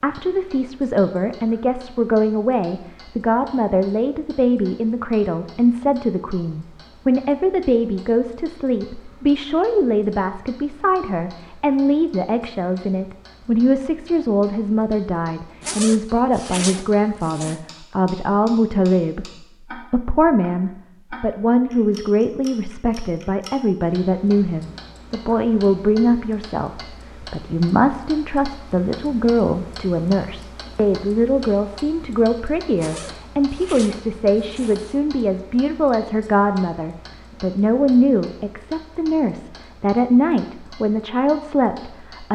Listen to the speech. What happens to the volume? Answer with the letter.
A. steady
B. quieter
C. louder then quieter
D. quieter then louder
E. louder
A.